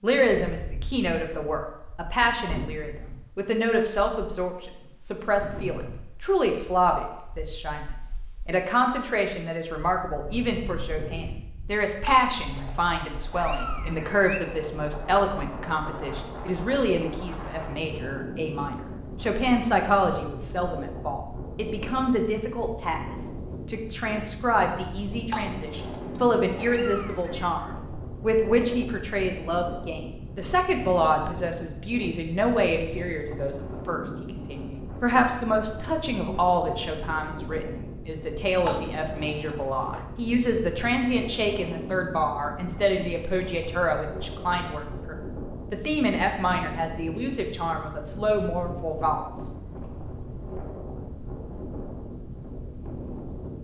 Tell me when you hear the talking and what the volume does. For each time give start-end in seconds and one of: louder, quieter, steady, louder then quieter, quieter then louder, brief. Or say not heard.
0.0-49.3 steady.